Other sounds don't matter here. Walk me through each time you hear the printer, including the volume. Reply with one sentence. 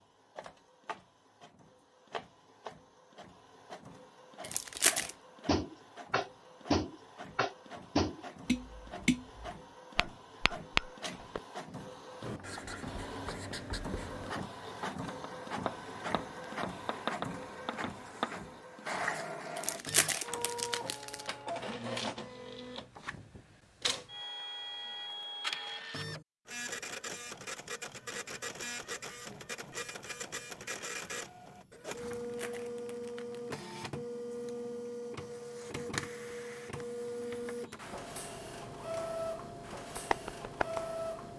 You can hear the printer from 0.0 to 41.3 s, getting louder.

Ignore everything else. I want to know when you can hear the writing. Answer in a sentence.
The writing can be heard from 12.2 to 18.6 s.